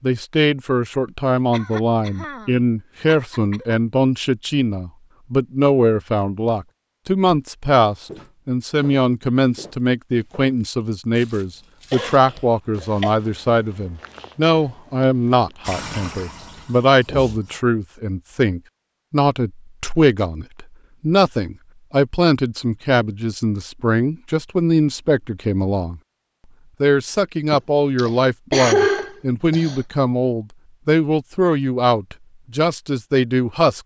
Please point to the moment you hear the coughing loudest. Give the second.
29 s.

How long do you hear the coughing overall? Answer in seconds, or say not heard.
6 s.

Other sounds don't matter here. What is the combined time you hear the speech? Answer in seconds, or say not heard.
33 s.